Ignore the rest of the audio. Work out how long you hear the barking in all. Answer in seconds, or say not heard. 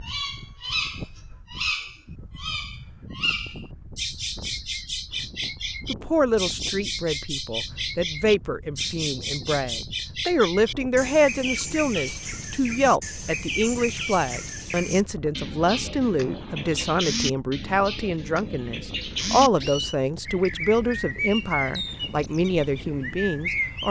not heard.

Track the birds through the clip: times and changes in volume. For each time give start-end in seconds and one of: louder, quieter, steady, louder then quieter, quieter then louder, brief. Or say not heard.
0.0-23.8 steady.